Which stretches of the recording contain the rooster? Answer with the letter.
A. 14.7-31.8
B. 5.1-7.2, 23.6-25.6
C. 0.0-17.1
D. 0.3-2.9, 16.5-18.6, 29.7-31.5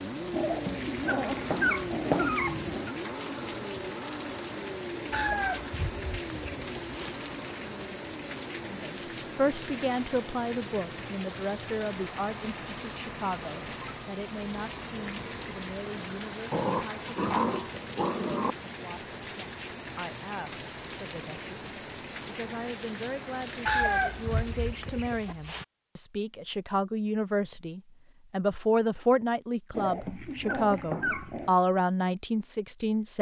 B.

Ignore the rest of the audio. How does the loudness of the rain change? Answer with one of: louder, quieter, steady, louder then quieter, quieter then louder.
steady.